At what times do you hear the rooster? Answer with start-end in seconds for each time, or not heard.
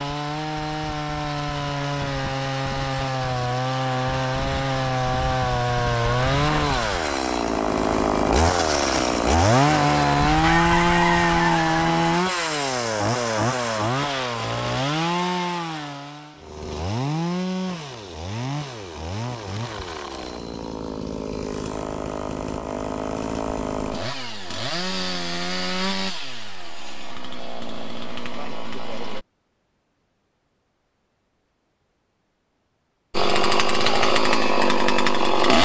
10.2-11.9.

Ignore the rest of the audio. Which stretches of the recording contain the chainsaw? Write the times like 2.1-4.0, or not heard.
0.0-29.2, 33.1-35.5.